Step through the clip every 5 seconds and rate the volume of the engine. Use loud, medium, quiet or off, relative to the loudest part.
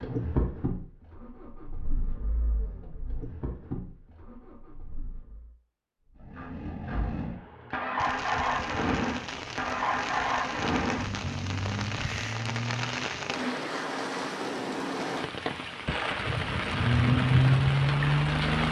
quiet, medium, medium, loud.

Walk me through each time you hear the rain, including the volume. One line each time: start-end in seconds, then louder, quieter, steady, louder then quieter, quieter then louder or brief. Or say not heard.
8.0-18.6 louder.